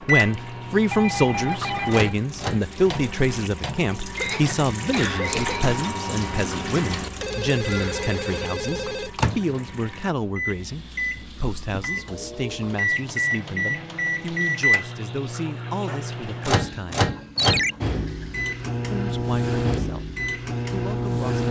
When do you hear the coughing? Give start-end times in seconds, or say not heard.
4.2-5.7.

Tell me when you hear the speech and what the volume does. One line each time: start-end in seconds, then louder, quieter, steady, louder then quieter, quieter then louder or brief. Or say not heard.
0.1-17.1 quieter
18.8-21.4 brief.